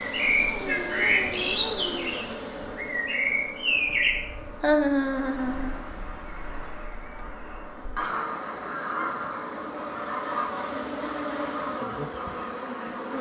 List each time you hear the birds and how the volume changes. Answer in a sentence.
You can hear the birds from 0.0 to 13.1 s, getting quieter then louder.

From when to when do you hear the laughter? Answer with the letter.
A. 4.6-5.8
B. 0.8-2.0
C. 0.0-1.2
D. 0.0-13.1
A.